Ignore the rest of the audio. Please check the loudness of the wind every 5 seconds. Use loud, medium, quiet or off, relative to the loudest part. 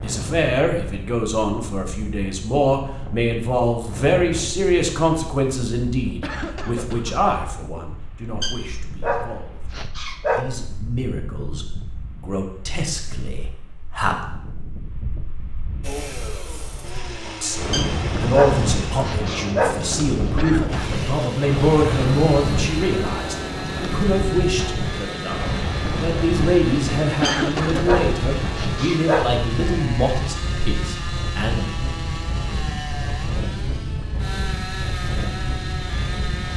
medium, quiet, quiet, loud, loud, loud, loud, loud.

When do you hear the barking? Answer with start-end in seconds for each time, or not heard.
8.4-10.4, 17.7-19.8, 27.2-29.2.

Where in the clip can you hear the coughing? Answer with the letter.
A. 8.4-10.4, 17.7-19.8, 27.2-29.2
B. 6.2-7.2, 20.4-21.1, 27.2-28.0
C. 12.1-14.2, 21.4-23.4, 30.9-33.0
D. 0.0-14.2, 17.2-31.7
B.